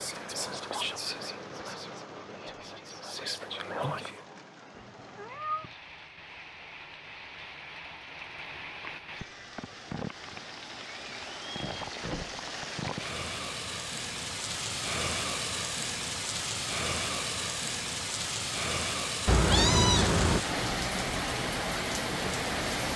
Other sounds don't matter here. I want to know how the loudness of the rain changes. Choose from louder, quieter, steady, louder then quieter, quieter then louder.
louder.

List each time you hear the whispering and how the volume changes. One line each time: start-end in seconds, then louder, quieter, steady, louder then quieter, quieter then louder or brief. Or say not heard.
0.0-4.2 quieter then louder.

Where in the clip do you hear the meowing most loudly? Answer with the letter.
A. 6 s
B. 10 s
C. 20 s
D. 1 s
C.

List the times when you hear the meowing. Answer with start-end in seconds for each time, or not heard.
4.8-5.8, 8.8-9.6, 19.2-20.4.